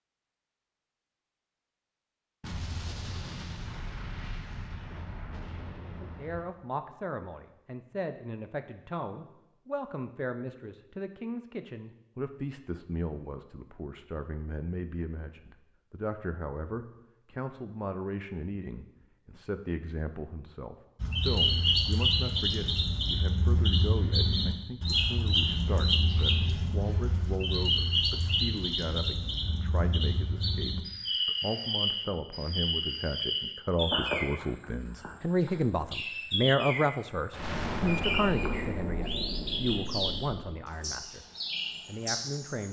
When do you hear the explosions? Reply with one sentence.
You can hear the explosions from 2.4 to 6.5 s and from 37.3 to 40.5 s.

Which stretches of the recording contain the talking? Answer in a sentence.
You can hear the talking from 5.8 to 41.2 s and from 41.9 to 42.6 s.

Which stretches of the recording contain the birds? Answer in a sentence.
The birds can be heard from 21.0 to 42.6 s.